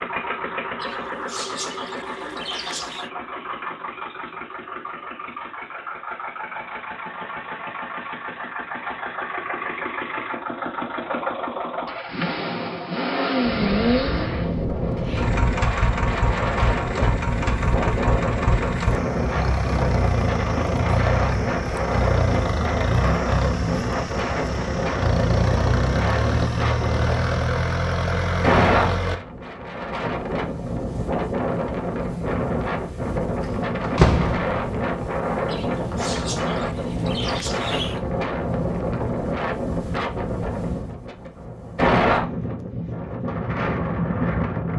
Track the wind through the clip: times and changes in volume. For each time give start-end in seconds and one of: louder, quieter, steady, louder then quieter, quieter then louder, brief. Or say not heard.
13.4-44.7 steady.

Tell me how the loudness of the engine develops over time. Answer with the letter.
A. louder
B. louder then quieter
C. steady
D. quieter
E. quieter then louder
A.